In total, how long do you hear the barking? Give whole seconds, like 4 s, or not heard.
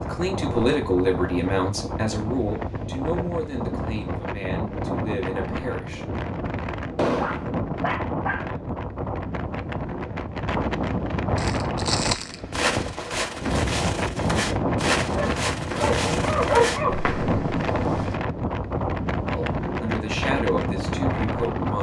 3 s.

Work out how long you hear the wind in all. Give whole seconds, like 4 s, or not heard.
22 s.